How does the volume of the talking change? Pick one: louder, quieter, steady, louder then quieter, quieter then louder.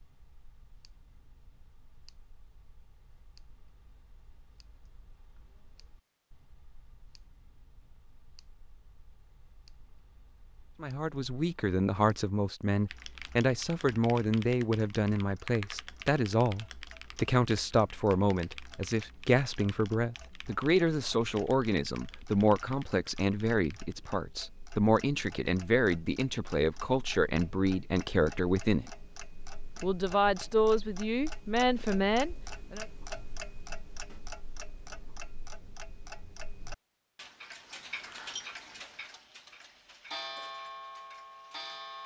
steady.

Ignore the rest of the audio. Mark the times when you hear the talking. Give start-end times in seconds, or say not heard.
10.8-28.9, 29.8-32.9.